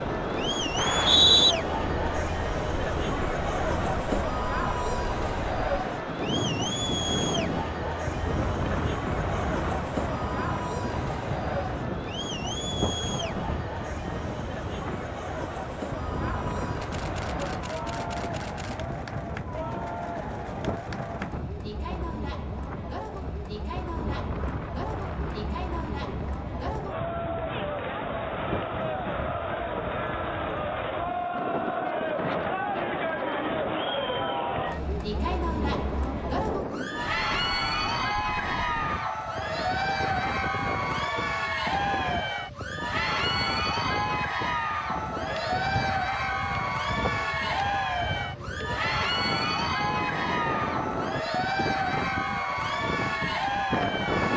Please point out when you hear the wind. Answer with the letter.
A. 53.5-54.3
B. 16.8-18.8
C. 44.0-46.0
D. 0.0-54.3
D.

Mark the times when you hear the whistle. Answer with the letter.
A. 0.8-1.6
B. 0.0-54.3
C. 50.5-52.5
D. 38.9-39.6
A.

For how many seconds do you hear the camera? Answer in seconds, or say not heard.
2 s.